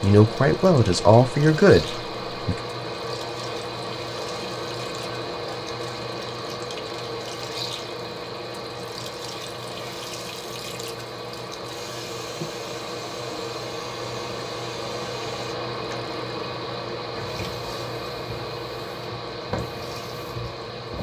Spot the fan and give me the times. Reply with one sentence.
The fan can be heard from 0.0 to 20.9 s.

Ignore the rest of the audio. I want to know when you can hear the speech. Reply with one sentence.
The speech can be heard from 0.0 to 2.6 s.